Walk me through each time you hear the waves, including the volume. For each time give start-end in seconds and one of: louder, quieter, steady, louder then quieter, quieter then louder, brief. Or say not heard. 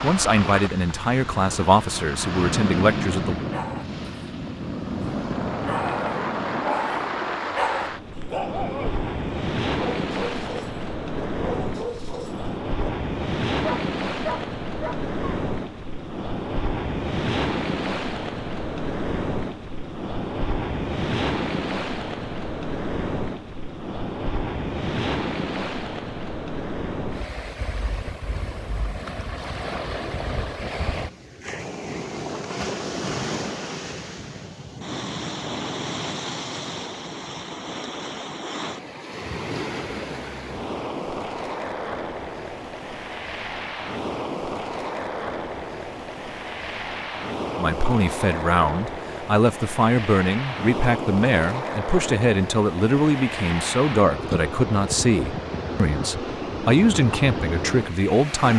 0.0-58.5 steady.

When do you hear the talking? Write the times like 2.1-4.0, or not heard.
0.0-3.5, 47.5-58.5.